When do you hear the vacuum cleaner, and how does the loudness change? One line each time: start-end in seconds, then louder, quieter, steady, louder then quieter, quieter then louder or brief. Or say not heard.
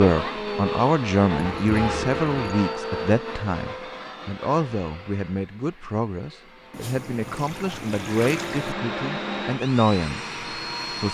0.0-11.1 quieter then louder.